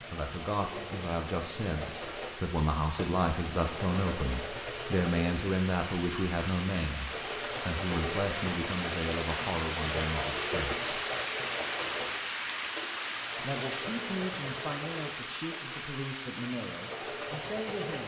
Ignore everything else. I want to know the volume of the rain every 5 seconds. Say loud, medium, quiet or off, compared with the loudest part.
medium, loud, loud, medium.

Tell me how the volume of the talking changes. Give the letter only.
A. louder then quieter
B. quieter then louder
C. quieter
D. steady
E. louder
C.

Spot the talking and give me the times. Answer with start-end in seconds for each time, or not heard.
0.1-10.8, 13.4-18.0.